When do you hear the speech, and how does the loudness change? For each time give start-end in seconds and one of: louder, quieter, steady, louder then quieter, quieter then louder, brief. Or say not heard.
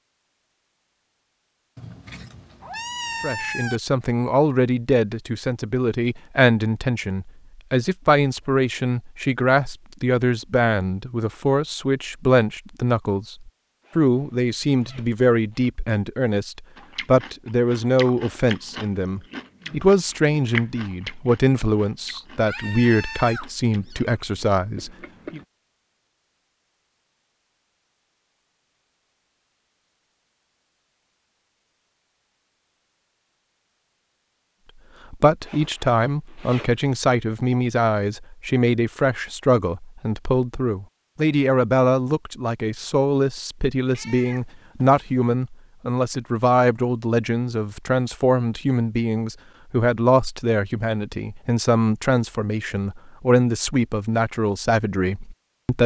3.2-25.4 steady
35.1-55.8 steady.